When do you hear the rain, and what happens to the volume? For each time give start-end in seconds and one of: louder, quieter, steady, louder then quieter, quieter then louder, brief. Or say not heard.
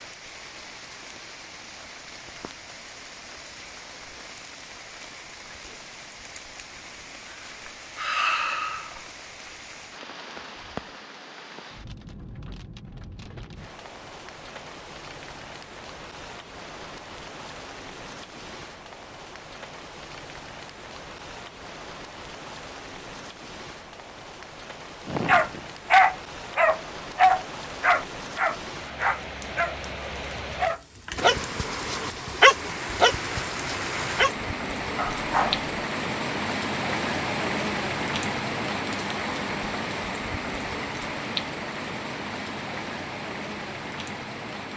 0.0-44.7 louder.